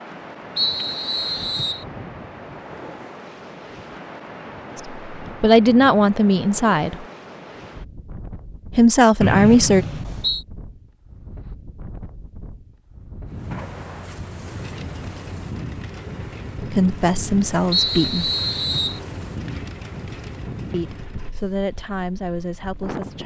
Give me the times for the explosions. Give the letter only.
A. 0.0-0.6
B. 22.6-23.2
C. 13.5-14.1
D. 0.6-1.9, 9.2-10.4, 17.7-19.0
C.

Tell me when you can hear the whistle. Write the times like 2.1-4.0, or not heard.
0.6-1.9, 9.2-10.4, 17.7-19.0.